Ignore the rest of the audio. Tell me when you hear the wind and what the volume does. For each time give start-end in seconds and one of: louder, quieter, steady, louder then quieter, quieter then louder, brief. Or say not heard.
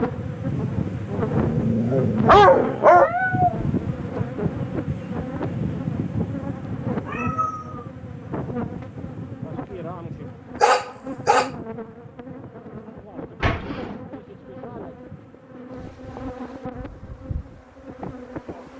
0.0-18.7 quieter.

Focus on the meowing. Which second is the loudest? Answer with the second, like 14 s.
3 s.